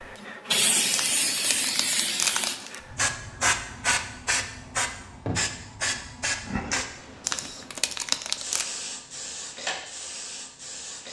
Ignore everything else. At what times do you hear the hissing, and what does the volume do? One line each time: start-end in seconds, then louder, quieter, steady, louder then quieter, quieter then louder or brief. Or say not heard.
0.2-11.0 quieter.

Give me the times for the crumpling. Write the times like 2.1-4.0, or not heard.
0.9-2.8, 7.2-8.7.